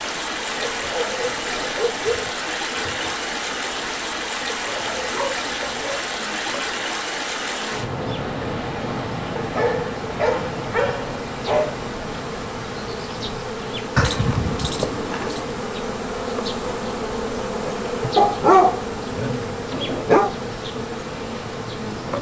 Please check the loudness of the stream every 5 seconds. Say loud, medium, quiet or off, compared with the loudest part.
loud, loud, medium, medium, medium.